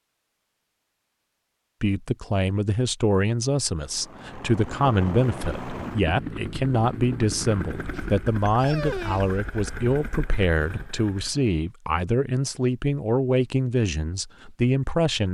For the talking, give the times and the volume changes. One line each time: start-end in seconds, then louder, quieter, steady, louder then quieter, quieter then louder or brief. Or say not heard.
1.8-15.2 steady.